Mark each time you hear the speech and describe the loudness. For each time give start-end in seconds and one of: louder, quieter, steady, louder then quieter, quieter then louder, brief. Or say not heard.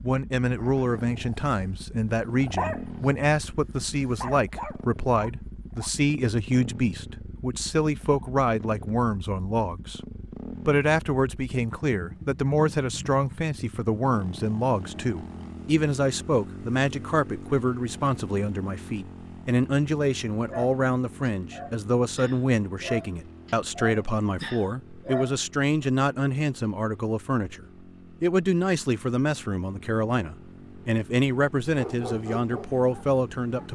0.0-10.0 steady
10.7-33.7 steady.